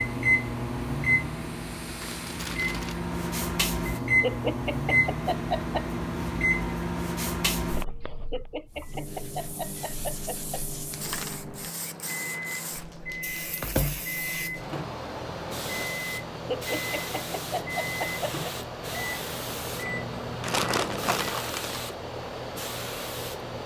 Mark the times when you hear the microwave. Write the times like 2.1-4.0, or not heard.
0.0-21.4.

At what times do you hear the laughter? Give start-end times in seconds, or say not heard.
4.2-6.0, 8.0-10.7, 16.4-18.5.